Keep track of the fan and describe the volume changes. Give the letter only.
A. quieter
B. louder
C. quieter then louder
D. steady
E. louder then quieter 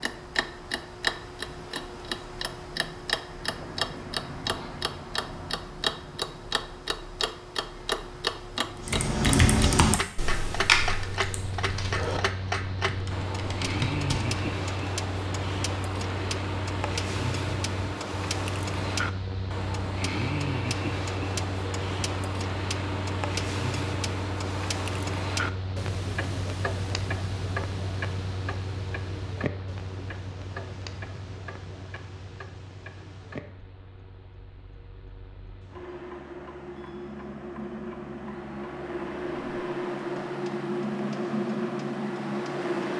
C.